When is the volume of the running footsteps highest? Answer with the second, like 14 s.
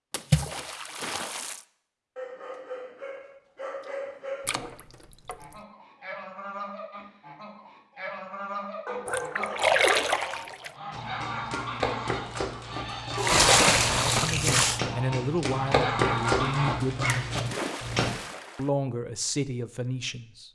16 s.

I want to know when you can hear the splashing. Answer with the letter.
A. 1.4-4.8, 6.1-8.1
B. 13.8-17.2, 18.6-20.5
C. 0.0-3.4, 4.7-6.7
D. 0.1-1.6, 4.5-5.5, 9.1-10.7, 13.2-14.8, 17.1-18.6
D.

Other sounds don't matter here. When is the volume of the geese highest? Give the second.
16 s.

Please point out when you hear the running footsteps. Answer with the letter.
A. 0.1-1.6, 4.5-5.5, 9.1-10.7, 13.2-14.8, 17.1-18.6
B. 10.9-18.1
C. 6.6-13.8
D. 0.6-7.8
B.